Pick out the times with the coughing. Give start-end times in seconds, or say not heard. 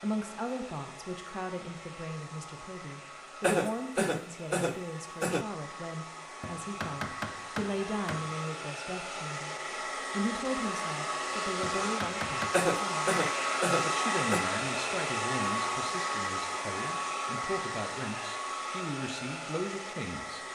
3.4-5.5, 12.5-14.4.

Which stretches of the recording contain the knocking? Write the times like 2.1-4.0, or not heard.
6.4-8.2, 11.6-12.6.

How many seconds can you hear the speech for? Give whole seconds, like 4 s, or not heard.
20 s.